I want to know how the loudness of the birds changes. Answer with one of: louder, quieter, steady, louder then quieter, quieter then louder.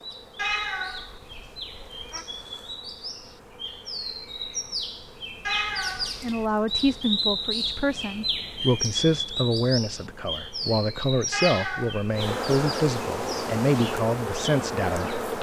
louder then quieter.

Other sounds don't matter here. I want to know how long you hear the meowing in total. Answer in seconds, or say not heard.
4 s.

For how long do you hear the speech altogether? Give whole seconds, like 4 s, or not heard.
9 s.